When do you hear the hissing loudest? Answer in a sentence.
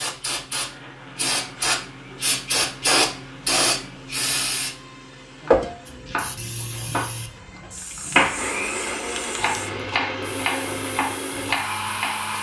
The volume of the hissing peaks at 3 seconds.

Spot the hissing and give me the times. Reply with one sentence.
The hissing can be heard from 0.0 to 12.3 s.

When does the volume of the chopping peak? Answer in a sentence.
The loudest moment of the chopping is at 8 seconds.